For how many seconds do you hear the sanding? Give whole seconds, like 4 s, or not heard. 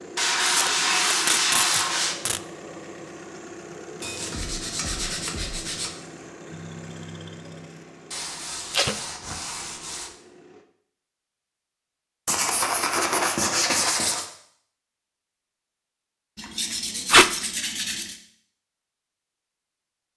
10 s.